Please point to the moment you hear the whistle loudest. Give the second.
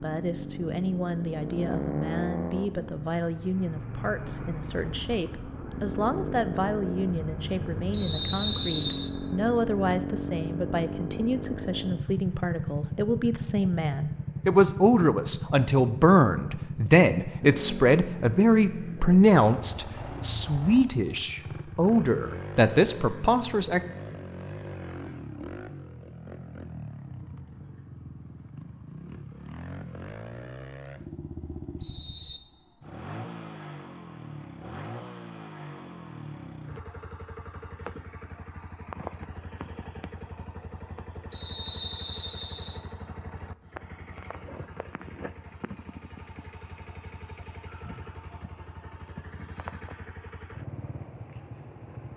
8 s.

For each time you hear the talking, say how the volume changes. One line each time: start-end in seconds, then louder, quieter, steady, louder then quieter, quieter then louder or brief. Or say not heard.
0.0-23.8 louder.